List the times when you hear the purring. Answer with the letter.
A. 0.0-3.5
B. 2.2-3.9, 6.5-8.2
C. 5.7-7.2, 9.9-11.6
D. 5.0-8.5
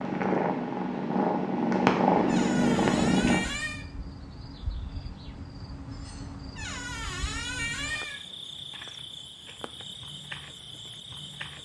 A.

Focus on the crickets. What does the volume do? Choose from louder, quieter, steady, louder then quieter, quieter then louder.
steady.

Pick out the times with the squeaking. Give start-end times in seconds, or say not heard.
2.2-3.9, 6.5-8.2.